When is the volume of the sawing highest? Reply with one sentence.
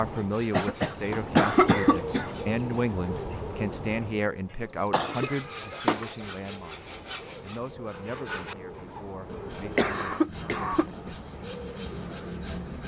The volume of the sawing peaks at 6 seconds.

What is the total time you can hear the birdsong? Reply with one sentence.
The birdsong can be heard for 13 seconds in total.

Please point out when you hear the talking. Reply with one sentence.
The talking can be heard from 0.0 to 10.3 s.